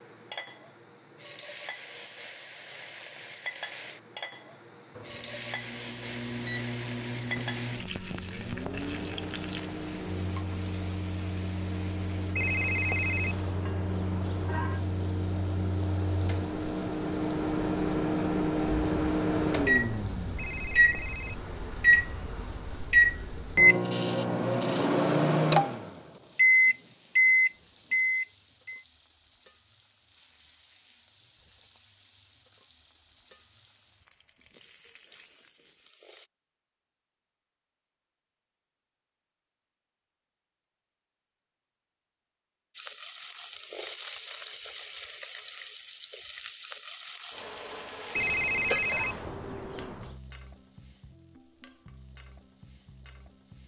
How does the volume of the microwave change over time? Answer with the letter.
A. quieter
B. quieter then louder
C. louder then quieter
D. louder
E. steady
D.